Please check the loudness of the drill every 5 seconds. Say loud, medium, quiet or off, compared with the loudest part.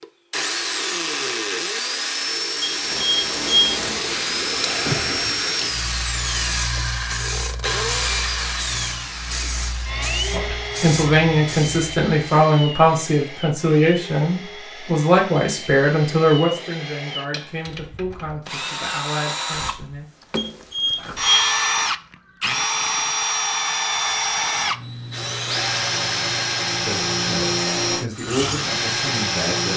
loud, loud, medium, medium, loud, loud.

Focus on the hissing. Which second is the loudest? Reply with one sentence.
The loudest moment of the hissing is at 5 seconds.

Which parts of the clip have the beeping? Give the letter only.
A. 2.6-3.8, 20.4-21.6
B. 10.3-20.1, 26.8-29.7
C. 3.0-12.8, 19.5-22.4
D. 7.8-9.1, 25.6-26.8
A.